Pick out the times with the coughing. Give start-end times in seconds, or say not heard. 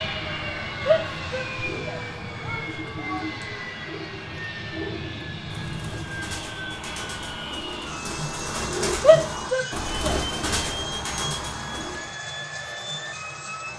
not heard.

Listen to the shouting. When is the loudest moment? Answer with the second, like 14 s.
9 s.